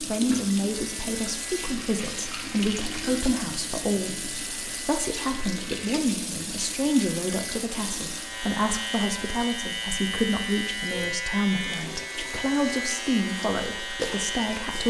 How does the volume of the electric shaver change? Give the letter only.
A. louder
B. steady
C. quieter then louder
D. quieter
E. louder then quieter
A.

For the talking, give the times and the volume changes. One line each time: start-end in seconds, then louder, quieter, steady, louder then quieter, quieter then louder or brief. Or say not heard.
0.0-14.8 steady.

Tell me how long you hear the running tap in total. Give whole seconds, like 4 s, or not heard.
15 s.